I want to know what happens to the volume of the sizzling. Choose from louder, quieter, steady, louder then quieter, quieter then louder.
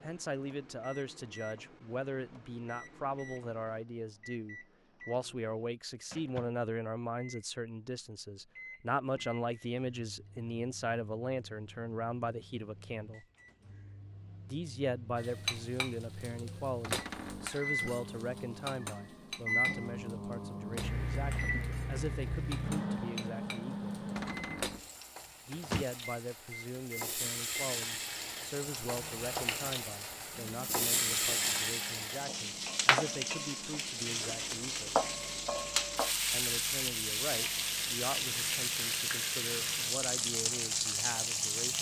louder.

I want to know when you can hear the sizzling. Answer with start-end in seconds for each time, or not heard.
15.2-41.7.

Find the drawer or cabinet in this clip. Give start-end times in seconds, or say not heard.
16.8-17.6, 24.1-24.9.